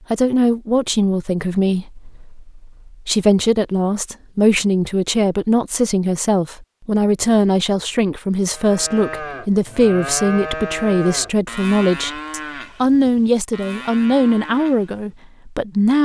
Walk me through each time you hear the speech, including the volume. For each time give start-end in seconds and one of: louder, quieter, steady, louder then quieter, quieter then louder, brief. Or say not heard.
0.1-16.0 steady.